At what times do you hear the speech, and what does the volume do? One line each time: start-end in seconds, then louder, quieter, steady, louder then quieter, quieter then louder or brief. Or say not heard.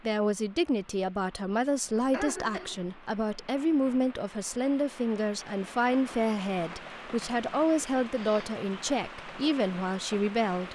0.0-10.7 steady.